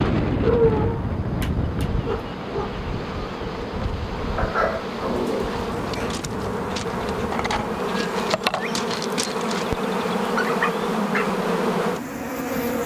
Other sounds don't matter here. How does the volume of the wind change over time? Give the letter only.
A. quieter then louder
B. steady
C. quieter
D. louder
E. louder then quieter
C.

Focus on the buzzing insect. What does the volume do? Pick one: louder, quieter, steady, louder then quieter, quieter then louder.
louder.